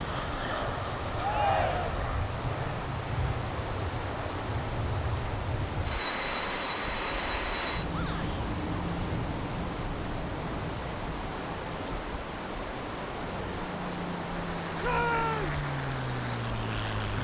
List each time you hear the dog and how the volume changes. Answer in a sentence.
You can't hear the dog here.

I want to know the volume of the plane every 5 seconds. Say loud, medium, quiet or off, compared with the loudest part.
loud, loud, medium, loud.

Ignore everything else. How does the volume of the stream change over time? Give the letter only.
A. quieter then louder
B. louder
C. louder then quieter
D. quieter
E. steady
E.